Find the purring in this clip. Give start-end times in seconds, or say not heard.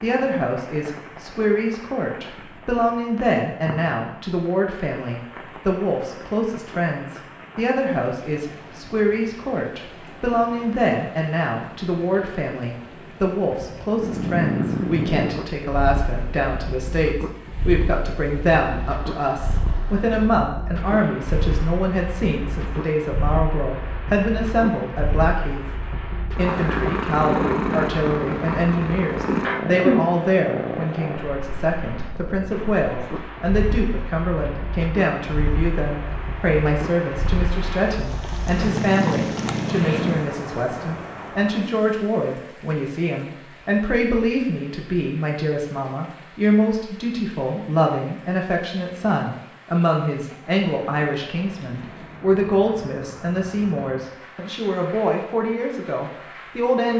14.0-40.2.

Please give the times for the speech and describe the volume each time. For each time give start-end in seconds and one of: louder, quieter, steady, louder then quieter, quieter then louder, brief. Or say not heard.
0.0-25.6 steady
26.4-56.9 steady.